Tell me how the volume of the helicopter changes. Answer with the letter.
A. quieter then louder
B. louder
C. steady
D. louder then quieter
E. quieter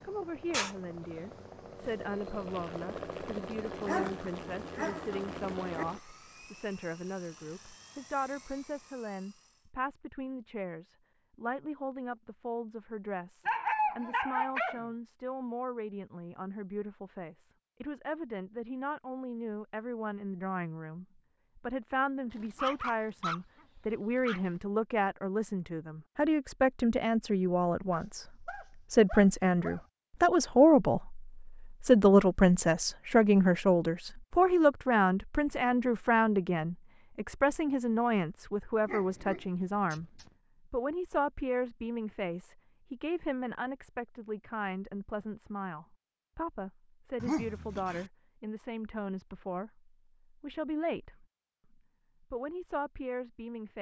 E.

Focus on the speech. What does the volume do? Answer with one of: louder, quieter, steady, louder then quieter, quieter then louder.
louder then quieter.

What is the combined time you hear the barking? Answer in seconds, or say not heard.
10 s.